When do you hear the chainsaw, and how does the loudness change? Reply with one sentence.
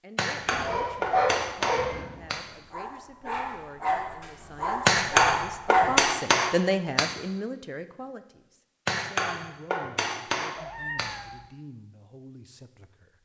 The chainsaw can't be heard in this clip.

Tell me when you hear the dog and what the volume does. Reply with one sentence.
The dog can be heard from 0.4 to 6.0 s, getting quieter then louder.